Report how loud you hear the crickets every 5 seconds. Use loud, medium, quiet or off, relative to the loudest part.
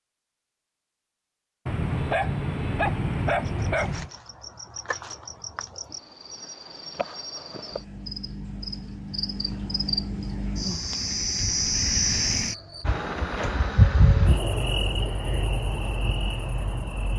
quiet, medium, loud, medium.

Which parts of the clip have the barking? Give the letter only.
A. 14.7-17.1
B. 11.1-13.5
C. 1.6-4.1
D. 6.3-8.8
C.